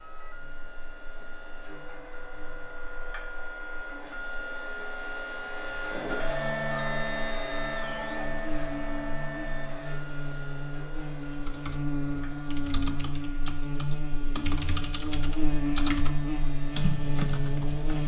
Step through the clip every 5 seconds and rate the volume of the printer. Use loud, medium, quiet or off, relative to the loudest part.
medium, loud, quiet, quiet.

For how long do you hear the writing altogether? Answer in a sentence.
The writing can't be heard in this clip.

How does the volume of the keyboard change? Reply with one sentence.
The volume of the keyboard goes up.